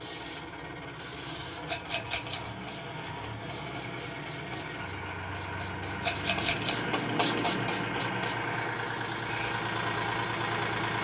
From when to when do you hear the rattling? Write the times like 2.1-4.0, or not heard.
1.6-2.4, 6.0-6.8.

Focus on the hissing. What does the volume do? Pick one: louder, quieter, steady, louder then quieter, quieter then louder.
louder.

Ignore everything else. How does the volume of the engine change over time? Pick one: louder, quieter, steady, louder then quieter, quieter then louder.
louder.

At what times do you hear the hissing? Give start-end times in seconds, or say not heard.
0.0-9.6.